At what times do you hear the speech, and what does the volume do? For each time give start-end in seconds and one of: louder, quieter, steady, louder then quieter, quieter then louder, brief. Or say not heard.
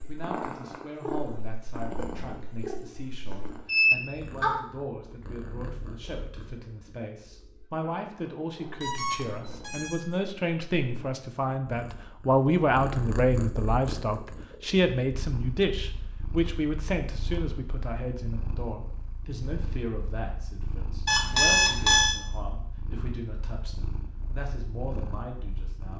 0.0-25.9 louder then quieter.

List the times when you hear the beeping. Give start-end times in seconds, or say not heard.
3.2-4.6, 8.8-9.9, 21.1-22.1.